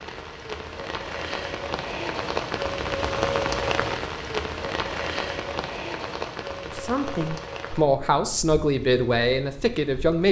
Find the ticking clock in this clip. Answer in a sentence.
You can't hear the ticking clock here.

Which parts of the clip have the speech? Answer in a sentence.
The speech can be heard from 6.6 to 10.2 s.